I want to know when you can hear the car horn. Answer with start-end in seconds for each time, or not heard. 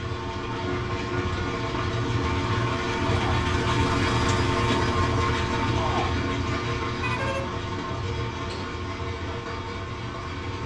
0.5-1.6, 7.0-7.6.